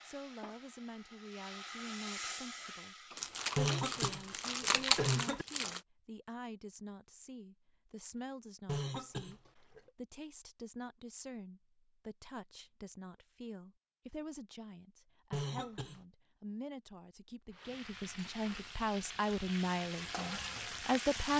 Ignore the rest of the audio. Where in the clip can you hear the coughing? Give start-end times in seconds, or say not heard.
3.5-5.5, 8.7-9.9, 15.3-16.0.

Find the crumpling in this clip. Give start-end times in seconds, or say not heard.
3.1-5.8.